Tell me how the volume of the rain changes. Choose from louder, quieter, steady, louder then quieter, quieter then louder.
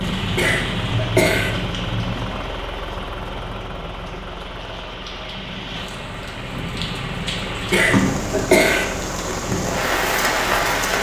quieter then louder.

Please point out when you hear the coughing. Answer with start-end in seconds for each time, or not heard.
0.3-1.5, 7.7-8.8.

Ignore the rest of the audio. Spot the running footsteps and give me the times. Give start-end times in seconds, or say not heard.
not heard.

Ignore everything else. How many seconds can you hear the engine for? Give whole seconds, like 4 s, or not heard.
11 s.